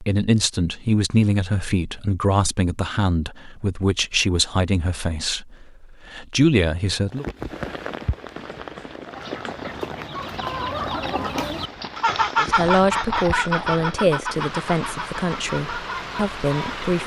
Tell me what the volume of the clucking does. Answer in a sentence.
The volume of the clucking goes up, then down.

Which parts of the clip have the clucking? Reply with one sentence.
The clucking can be heard from 9.1 to 16.9 s.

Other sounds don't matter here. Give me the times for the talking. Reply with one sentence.
The talking can be heard from 0.0 to 7.2 s and from 12.3 to 17.0 s.